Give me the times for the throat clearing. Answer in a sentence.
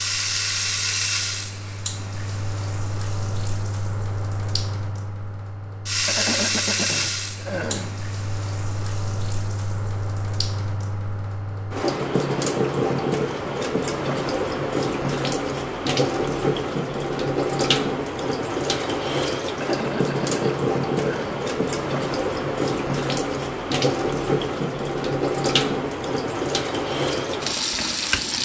You can hear the throat clearing from 6.0 to 8.0 s and from 19.6 to 21.4 s.